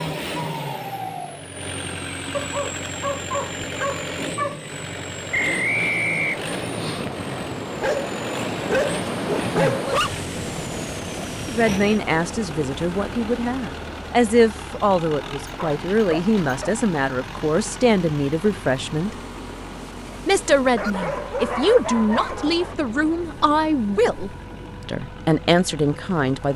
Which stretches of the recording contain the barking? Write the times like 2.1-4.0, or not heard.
2.3-4.6, 7.8-10.1, 15.4-16.8, 20.8-22.8.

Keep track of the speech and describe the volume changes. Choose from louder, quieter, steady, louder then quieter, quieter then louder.
steady.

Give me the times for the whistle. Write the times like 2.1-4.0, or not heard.
5.3-6.5.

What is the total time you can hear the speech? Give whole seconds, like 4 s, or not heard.
14 s.